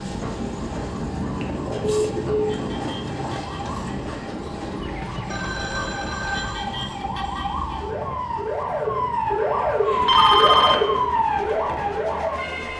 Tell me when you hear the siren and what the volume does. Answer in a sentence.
The siren can be heard from 0.0 to 12.7 s, getting louder.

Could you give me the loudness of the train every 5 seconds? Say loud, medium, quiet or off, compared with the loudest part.
loud, medium, medium.